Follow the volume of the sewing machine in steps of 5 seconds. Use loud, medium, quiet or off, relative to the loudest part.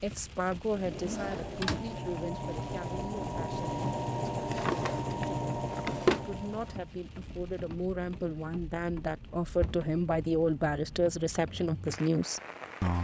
loud, loud, off.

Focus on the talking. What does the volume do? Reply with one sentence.
The loudness of the talking goes down, then up.